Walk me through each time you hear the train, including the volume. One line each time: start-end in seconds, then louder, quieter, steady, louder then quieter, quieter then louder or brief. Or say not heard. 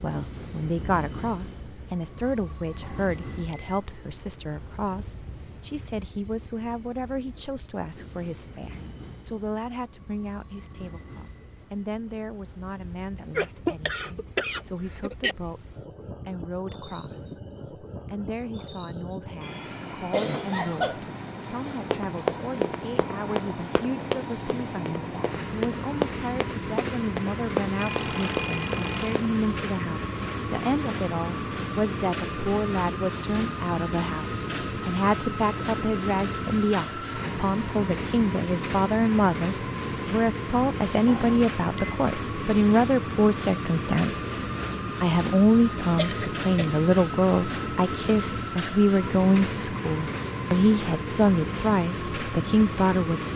0.0-53.3 louder.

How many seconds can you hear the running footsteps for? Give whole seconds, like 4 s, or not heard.
8 s.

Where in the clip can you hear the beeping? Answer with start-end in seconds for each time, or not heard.
2.8-3.9, 27.8-29.2, 41.0-42.0.